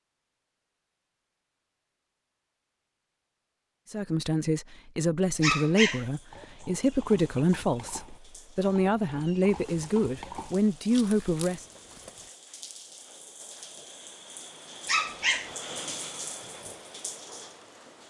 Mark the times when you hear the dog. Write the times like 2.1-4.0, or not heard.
5.4-6.0, 14.8-15.5.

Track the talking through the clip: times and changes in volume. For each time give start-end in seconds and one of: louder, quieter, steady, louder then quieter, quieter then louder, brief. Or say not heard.
3.9-11.7 steady.